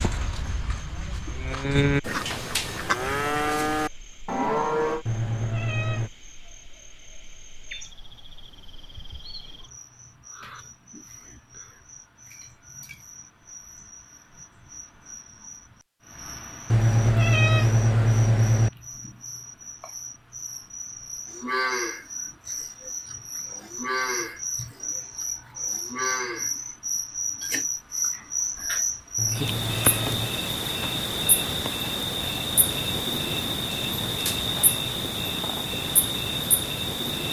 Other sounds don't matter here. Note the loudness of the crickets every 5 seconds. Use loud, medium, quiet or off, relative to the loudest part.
quiet, quiet, quiet, quiet, medium, loud, loud, loud.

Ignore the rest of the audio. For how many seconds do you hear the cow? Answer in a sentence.
The cow can be heard for 10 seconds in total.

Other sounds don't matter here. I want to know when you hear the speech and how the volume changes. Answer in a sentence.
You can't hear the speech here.